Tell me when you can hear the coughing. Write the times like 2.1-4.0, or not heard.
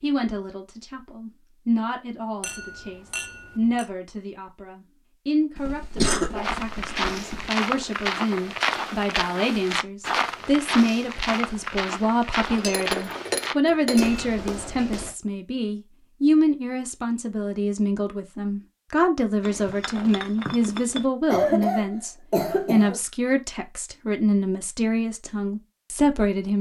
5.5-7.5, 21.2-23.0.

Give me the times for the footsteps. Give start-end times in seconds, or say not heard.
6.4-15.2.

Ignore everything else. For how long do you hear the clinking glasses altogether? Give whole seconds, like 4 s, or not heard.
5 s.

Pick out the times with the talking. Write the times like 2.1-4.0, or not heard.
0.0-26.5.